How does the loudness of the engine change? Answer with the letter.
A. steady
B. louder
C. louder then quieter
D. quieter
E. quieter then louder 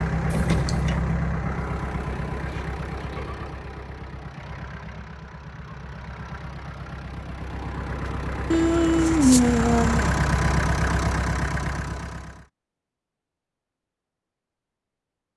E.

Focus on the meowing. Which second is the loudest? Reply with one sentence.
The loudest moment of the meowing is at 9 seconds.